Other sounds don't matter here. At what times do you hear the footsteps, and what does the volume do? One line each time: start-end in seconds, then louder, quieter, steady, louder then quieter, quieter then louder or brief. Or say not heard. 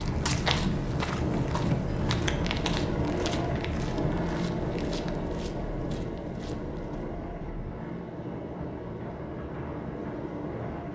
0.0-7.2 quieter.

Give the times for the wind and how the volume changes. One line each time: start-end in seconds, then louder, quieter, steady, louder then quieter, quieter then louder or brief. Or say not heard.
0.0-10.9 quieter.